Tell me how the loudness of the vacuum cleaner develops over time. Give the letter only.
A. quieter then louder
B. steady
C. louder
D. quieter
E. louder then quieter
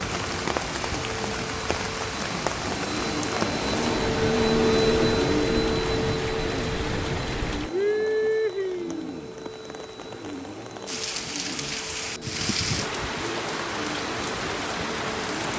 E.